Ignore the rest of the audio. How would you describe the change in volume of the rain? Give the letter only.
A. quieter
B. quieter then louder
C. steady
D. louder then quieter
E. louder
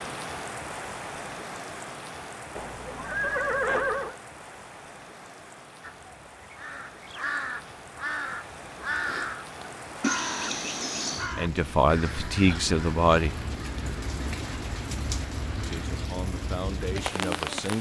B.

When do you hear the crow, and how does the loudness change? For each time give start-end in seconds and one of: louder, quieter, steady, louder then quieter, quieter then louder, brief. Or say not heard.
5.8-16.1 quieter.